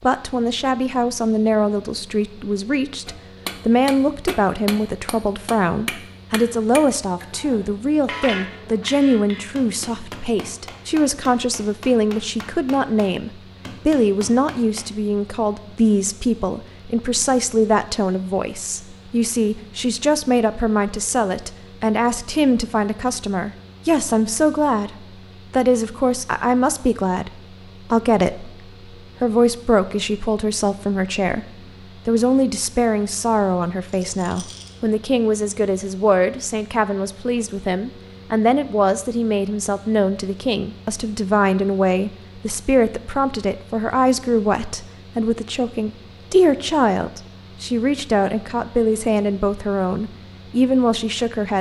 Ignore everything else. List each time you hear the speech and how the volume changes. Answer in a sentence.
The speech can be heard from 0.0 to 31.4 s, at a steady volume; and from 32.0 to 51.5 s, at a steady volume.